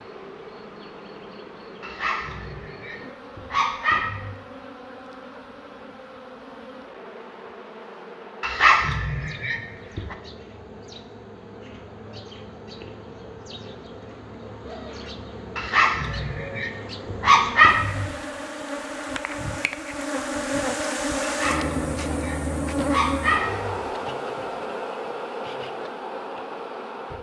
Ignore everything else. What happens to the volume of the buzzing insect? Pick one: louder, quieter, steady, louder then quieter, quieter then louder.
louder.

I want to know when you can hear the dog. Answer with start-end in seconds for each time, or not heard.
1.8-4.3, 8.4-10.2, 15.6-18.1, 21.2-23.9.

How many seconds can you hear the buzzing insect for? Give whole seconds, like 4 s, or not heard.
27 s.